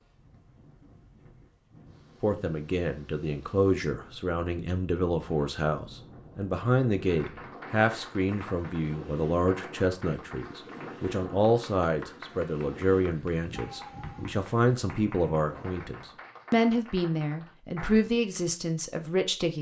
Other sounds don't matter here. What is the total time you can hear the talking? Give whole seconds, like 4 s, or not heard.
17 s.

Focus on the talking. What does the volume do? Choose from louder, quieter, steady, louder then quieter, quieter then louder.
steady.